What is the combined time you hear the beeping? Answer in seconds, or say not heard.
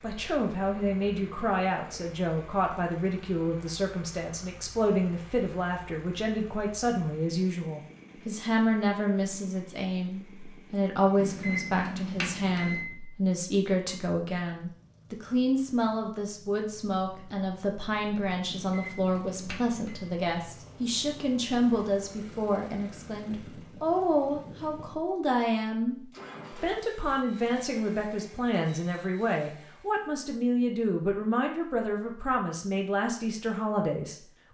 3 s.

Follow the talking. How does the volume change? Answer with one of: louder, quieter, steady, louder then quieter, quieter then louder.
steady.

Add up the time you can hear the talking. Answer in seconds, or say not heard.
34 s.